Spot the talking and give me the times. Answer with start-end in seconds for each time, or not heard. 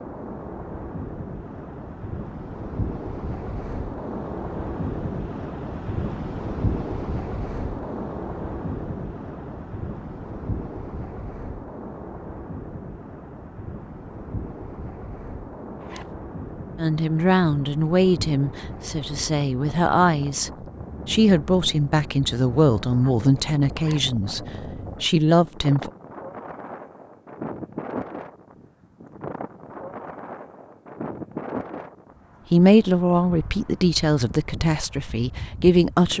16.8-25.9, 32.5-36.1.